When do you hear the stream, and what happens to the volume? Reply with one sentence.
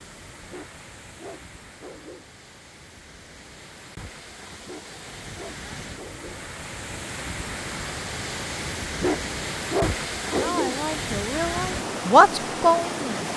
You can hear the stream from 0.0 to 13.3 s, getting louder.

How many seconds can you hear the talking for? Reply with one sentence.
The talking can be heard for 3 seconds in total.